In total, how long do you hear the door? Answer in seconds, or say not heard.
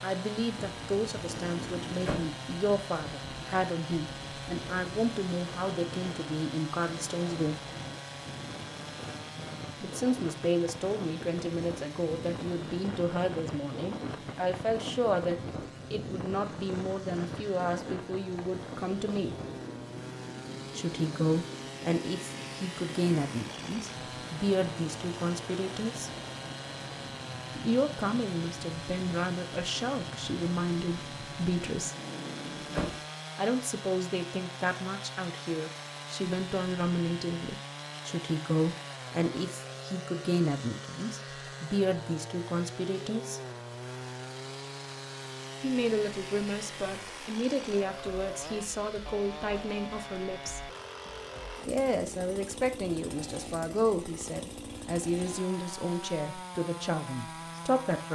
2 s.